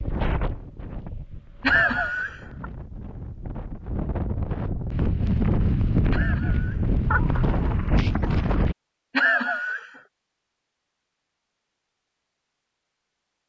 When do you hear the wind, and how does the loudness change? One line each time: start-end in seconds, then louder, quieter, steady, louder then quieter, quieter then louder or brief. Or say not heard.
0.0-8.8 louder.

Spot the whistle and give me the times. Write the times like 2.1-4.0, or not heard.
not heard.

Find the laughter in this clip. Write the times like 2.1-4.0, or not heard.
1.6-2.6, 6.1-7.5, 9.2-9.9.